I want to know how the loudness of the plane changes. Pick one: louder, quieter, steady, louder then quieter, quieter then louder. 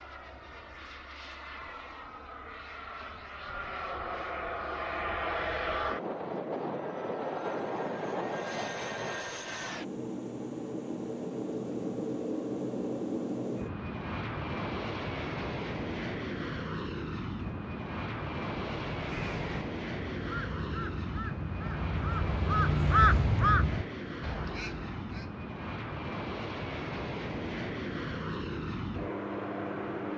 steady.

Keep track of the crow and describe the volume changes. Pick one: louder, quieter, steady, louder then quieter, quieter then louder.
louder then quieter.